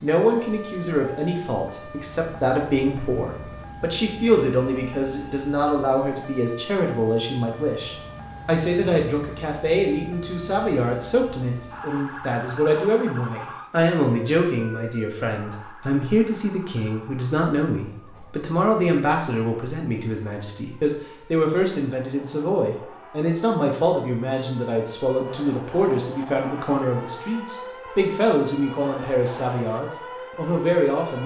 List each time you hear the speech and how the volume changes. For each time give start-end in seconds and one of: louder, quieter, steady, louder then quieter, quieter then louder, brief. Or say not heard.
0.0-31.2 steady.